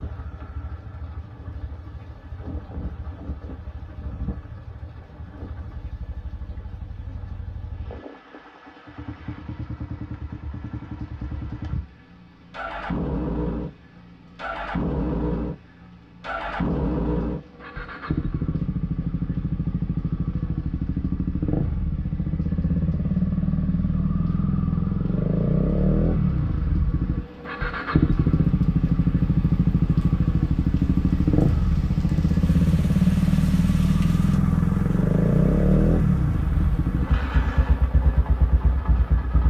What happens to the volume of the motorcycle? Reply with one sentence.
The volume of the motorcycle goes up.